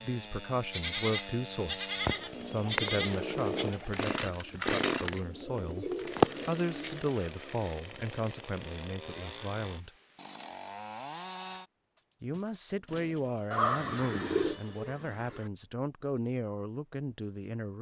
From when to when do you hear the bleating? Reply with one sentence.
You can hear the bleating from 0.7 to 3.6 s.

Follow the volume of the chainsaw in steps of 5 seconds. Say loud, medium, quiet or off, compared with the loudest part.
loud, medium, medium, off.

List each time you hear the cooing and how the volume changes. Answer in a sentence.
You can hear the cooing from 1.9 to 7.0 s, getting quieter then louder; and briefly from 13.5 to 15.5 s.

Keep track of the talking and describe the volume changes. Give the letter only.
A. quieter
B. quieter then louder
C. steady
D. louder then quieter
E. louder
C.